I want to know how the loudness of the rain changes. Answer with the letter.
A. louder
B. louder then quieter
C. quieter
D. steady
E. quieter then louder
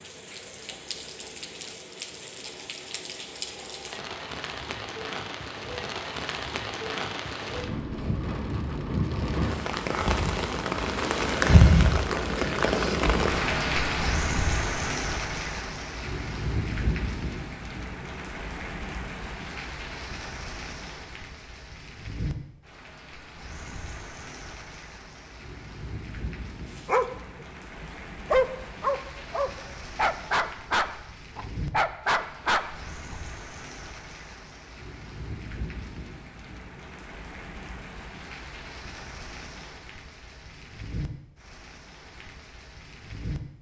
B.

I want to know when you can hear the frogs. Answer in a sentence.
The frogs can't be heard in this clip.